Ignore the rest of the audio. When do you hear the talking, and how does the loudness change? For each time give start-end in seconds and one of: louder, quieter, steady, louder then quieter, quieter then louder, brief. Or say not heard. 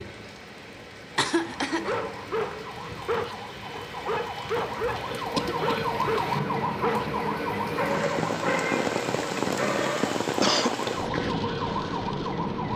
not heard.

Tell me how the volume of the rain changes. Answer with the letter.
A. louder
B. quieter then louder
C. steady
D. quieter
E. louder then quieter
A.